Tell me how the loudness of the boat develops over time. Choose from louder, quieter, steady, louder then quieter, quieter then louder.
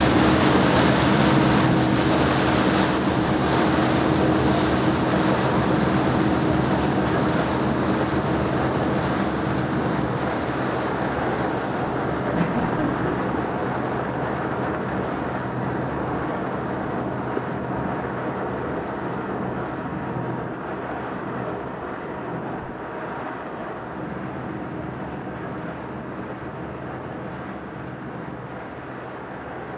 quieter.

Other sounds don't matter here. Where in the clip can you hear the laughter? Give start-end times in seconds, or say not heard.
12.3-13.3.